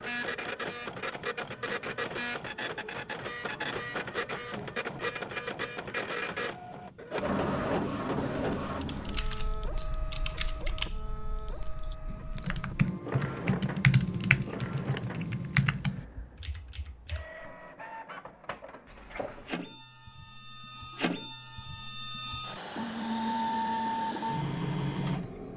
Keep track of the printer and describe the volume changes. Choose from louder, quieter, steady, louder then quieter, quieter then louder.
quieter then louder.